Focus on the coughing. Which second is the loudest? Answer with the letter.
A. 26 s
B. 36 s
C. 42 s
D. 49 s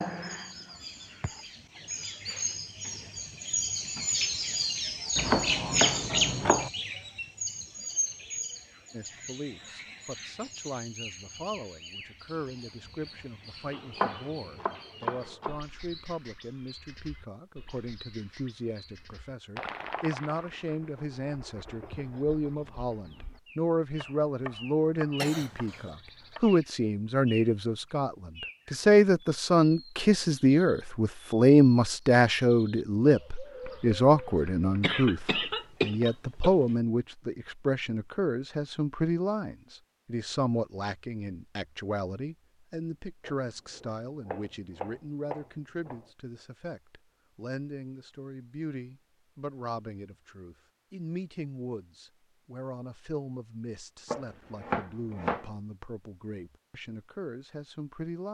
B.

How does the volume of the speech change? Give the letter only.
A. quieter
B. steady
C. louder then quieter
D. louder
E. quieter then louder
C.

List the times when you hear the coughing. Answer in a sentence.
The coughing can be heard from 25.1 to 25.9 s and from 34.8 to 36.5 s.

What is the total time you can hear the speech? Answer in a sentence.
You can hear the speech for 49 seconds altogether.